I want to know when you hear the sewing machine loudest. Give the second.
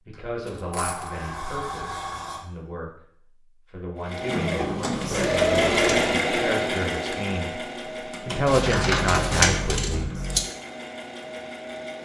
6 s.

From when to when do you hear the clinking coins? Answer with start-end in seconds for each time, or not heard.
0.1-1.2, 5.2-6.2, 8.4-10.4.